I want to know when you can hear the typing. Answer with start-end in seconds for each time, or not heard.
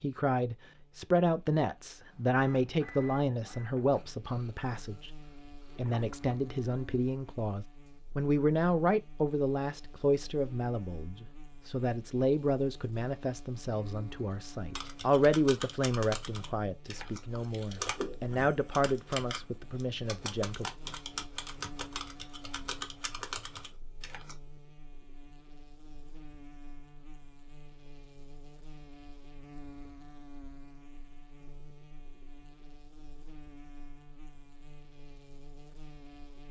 14.8-24.4.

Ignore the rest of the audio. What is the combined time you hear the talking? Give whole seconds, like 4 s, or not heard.
20 s.